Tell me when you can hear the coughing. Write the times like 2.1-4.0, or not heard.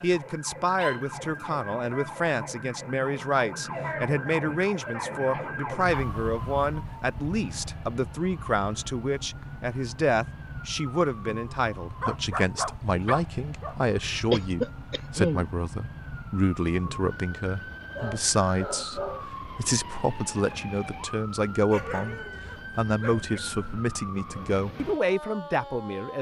14.3-15.5.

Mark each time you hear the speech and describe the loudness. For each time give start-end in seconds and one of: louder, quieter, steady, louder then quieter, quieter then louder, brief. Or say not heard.
0.0-26.1 steady.